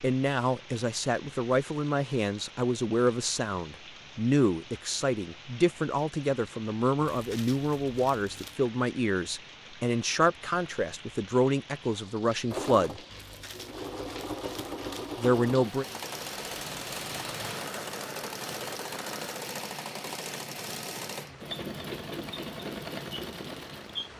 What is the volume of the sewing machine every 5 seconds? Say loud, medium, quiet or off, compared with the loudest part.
off, off, loud, loud, loud.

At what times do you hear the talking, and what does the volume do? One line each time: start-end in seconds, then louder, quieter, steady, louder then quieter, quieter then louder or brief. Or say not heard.
0.0-13.0 steady
15.2-15.8 brief.